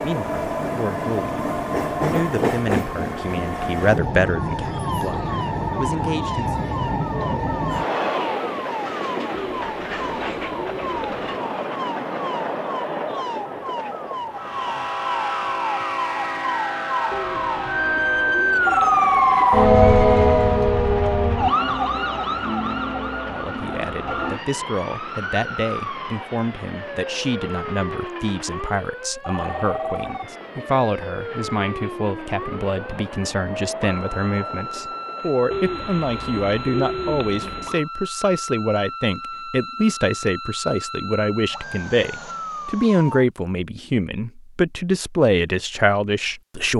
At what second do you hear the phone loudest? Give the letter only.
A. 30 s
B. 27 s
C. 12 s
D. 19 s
D.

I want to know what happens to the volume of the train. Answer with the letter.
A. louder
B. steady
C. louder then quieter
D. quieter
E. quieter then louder
D.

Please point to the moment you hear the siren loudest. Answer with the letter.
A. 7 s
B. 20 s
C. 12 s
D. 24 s
B.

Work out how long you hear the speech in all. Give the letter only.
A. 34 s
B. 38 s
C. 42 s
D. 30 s
D.